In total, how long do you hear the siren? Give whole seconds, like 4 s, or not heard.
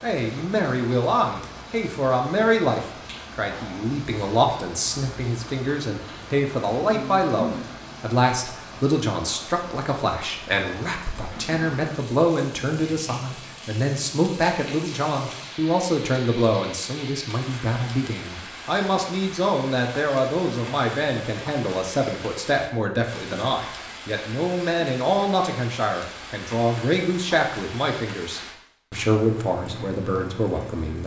not heard.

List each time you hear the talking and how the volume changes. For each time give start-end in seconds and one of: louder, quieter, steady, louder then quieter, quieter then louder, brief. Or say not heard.
0.0-31.0 steady.